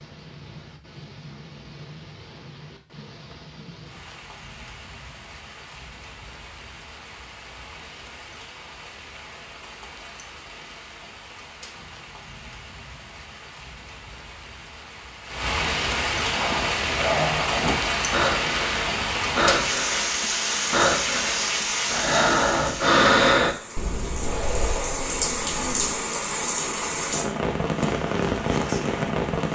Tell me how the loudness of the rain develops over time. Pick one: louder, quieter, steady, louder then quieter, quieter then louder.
louder.